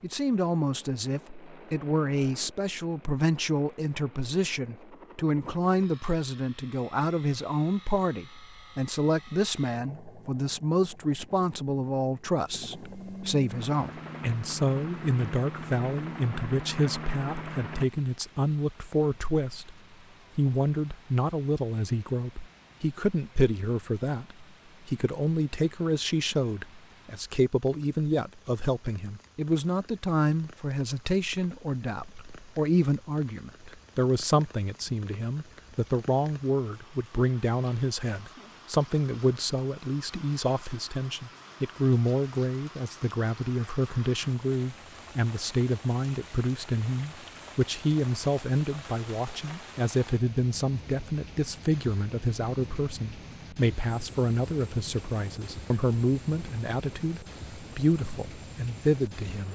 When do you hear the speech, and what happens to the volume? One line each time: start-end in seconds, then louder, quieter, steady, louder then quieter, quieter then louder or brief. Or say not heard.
0.0-19.8 steady
20.4-59.5 steady.